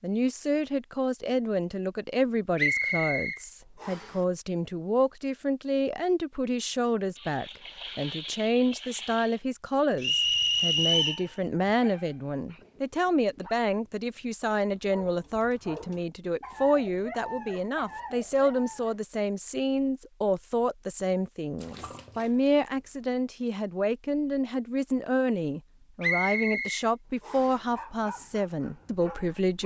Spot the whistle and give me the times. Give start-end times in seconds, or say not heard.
2.5-4.1, 10.0-11.2, 26.0-27.6.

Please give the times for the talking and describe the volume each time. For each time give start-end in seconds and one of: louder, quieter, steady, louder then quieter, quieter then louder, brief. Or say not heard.
0.0-29.6 steady.